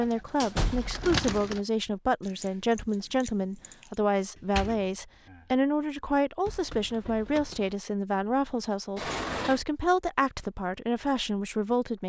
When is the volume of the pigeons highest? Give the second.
1 s.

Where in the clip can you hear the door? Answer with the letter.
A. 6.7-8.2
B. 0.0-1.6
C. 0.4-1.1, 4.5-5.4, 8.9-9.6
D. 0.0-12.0
C.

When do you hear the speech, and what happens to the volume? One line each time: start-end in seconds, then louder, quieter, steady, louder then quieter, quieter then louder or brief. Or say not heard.
0.0-12.0 steady.